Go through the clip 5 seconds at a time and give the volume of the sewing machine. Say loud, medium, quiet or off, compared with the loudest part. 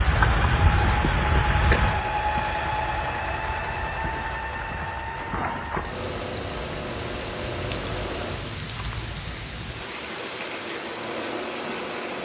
loud, medium, medium.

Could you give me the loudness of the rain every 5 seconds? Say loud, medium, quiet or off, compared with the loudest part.
loud, medium, medium.